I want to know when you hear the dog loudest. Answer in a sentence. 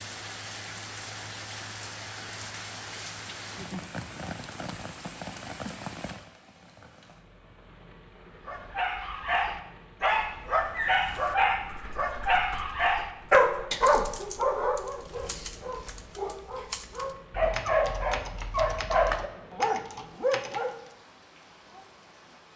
The loudest moment of the dog is at 13 seconds.